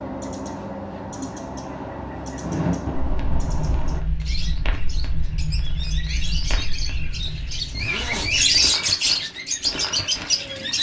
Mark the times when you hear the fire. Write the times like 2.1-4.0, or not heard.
2.4-10.7.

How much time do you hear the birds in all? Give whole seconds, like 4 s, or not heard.
11 s.